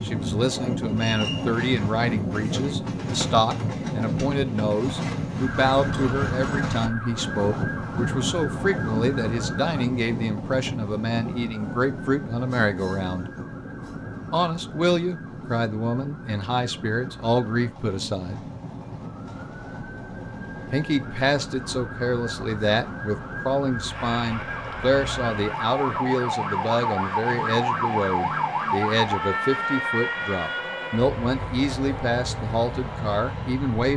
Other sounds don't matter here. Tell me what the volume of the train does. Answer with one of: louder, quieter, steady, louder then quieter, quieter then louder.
quieter.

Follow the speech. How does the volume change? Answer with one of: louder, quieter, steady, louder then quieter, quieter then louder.
steady.